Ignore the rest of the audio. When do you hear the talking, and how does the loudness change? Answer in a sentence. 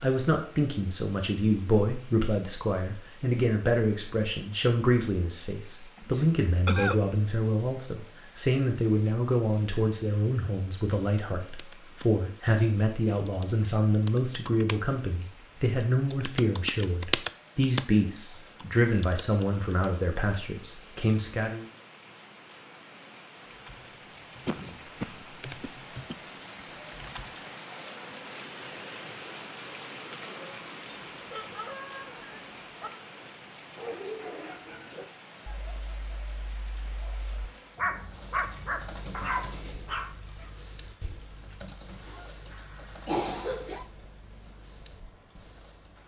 You can hear the talking from 0.0 to 21.6 s, at a steady volume.